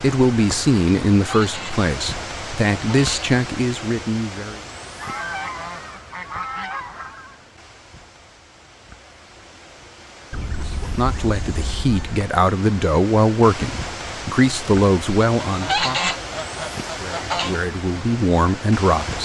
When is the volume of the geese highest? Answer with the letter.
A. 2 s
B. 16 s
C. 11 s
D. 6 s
B.